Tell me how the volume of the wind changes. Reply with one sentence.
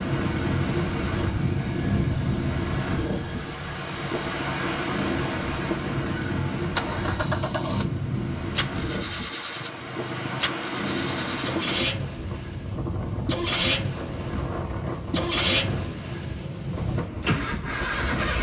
The loudness of the wind goes down.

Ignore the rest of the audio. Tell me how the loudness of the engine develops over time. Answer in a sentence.
The volume of the engine goes up.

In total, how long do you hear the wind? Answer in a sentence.
You can hear the wind for 18 seconds altogether.